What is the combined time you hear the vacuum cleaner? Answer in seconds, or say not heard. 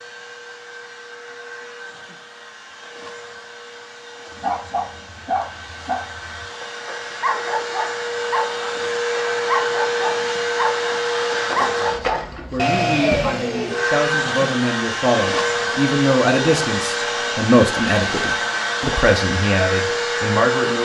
21 s.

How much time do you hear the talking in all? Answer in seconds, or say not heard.
9 s.